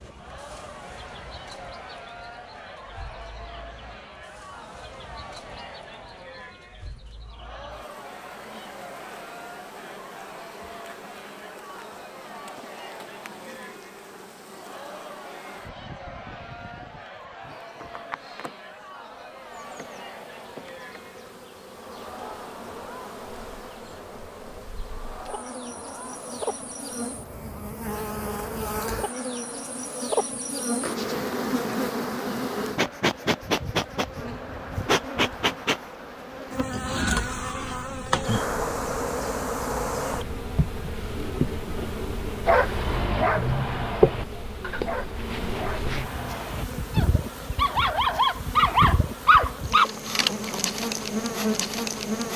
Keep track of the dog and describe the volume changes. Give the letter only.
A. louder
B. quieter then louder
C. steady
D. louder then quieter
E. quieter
B.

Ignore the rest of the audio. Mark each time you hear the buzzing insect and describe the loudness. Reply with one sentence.
You can hear the buzzing insect from 0.0 to 52.3 s, getting louder.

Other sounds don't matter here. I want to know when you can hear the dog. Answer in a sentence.
The dog can be heard from 42.5 to 49.9 s.